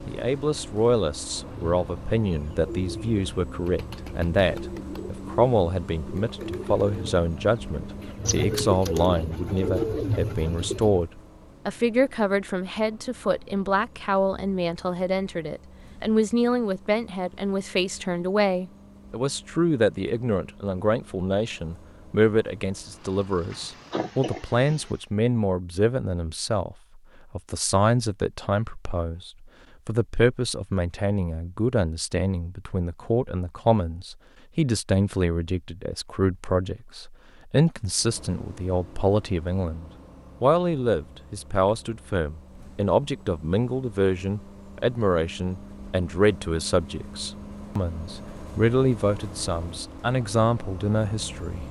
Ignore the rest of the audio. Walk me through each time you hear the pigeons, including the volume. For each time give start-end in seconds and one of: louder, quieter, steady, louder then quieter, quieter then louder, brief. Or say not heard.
1.3-11.1 louder.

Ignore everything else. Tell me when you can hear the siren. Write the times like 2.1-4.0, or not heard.
not heard.